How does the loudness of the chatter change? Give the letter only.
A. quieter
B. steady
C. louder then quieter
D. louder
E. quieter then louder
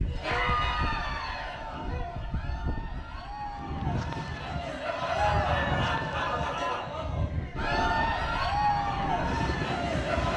E.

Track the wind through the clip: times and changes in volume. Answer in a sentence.
You can hear the wind from 0.0 to 10.3 s, getting louder.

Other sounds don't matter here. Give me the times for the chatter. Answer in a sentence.
The chatter can be heard from 0.1 to 10.3 s.